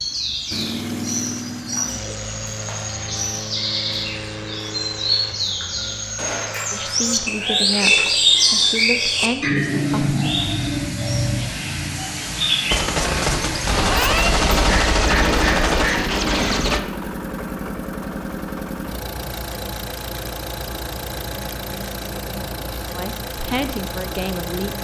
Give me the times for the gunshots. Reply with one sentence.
You can hear the gunshots from 6.2 to 8.2 s and from 12.7 to 16.8 s.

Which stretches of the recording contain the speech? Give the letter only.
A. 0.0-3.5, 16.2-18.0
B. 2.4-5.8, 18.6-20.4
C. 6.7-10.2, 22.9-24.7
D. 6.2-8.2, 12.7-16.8
C.